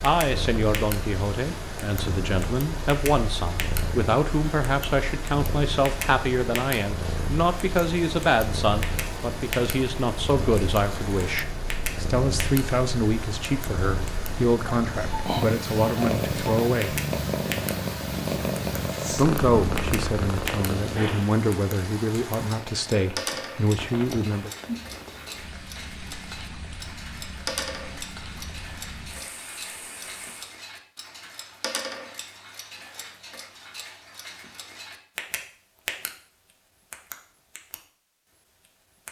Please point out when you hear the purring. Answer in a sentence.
The purring can be heard from 0.0 to 21.3 s.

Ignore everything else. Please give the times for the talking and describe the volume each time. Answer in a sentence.
You can hear the talking from 0.0 to 17.0 s, at a steady volume; and from 19.1 to 24.5 s, at a steady volume.